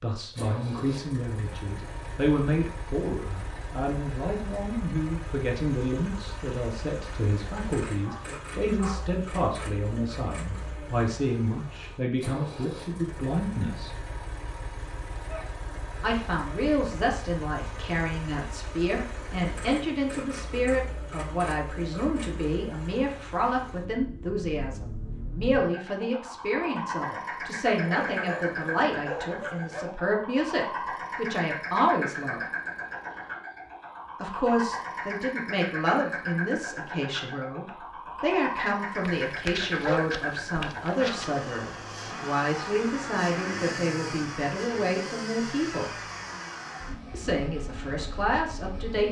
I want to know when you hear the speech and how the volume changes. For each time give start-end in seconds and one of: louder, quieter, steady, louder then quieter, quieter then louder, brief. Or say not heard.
0.0-14.0 steady
16.0-32.4 steady
34.2-46.0 steady
47.1-49.0 brief.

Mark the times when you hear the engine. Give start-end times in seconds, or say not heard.
0.1-49.0.